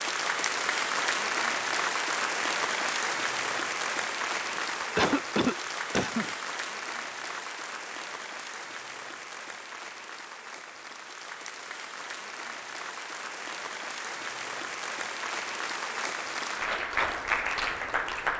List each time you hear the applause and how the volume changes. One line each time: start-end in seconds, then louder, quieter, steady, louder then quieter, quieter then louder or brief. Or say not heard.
0.0-18.3 quieter then louder.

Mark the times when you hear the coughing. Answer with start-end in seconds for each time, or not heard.
4.5-6.3.